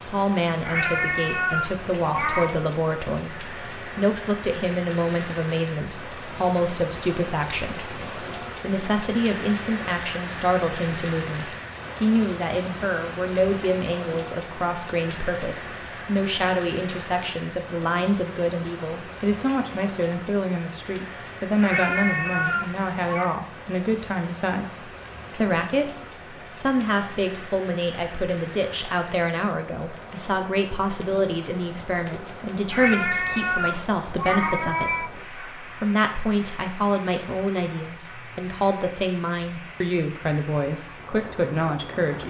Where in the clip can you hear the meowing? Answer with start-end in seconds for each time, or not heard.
0.6-2.6, 21.6-23.4, 32.7-35.1.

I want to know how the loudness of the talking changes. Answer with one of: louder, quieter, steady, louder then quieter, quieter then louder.
steady.